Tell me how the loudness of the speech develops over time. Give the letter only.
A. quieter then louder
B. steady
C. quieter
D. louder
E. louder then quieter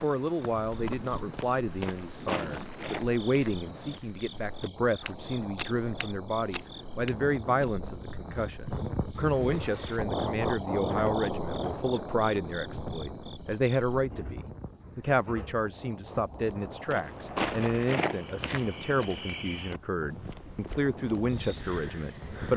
B.